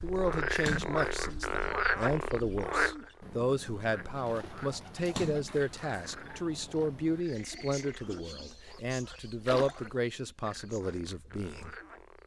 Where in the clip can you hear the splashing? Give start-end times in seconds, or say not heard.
0.6-1.2, 5.0-5.8, 9.4-9.9.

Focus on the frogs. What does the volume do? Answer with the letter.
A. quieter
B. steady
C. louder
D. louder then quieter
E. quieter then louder
A.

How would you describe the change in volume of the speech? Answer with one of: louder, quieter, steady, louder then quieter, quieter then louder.
steady.